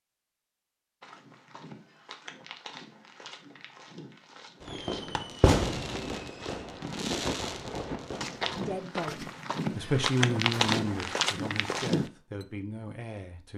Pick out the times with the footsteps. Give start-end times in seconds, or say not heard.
1.0-12.1.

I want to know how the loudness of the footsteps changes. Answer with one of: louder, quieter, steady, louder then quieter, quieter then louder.
louder.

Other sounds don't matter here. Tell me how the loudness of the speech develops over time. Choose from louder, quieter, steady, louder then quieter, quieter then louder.
louder then quieter.